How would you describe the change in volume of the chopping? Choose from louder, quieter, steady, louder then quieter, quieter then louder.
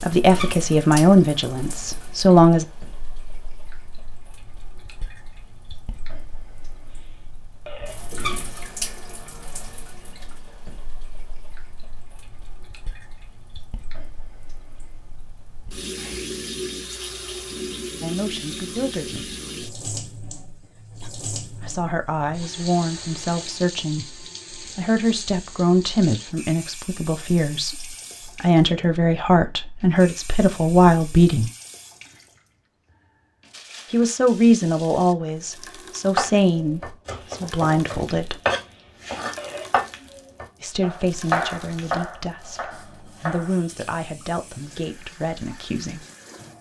louder then quieter.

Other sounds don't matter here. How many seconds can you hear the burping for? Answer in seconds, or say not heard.
2 s.